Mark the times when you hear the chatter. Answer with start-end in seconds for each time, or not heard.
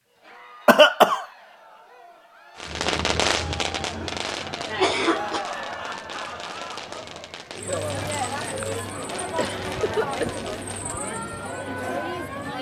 0.0-12.5.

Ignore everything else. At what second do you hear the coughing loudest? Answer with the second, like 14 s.
1 s.